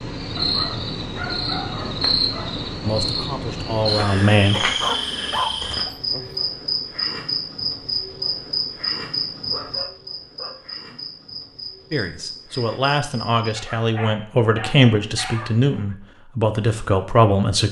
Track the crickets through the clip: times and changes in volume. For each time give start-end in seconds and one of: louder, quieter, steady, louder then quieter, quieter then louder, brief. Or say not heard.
0.0-13.3 quieter.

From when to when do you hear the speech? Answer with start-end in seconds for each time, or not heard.
2.9-4.7, 11.9-17.6.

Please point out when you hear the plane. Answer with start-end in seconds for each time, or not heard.
not heard.